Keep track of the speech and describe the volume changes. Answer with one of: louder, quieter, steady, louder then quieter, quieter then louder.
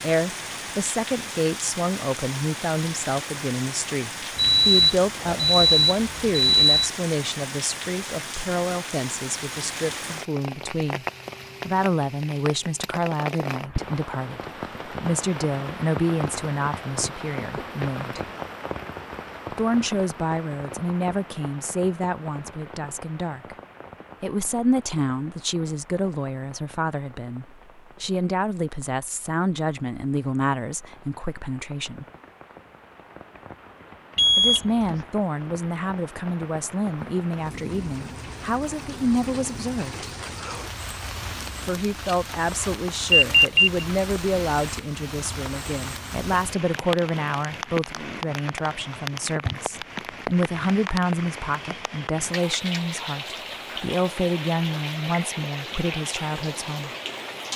steady.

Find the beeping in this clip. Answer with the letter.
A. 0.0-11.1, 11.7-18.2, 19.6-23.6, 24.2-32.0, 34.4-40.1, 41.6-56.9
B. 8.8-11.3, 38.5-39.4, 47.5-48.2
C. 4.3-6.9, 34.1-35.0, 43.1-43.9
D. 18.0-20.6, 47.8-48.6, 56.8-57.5
C.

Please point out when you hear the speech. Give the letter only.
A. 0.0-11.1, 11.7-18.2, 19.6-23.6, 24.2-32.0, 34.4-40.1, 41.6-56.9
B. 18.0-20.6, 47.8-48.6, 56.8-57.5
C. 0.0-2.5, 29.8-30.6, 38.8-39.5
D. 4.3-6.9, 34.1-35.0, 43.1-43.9
A.